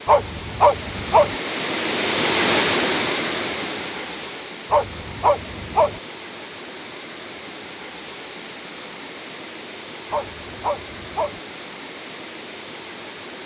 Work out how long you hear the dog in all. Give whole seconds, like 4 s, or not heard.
4 s.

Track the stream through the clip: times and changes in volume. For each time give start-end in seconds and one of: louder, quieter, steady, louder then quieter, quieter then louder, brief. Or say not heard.
0.0-13.4 quieter.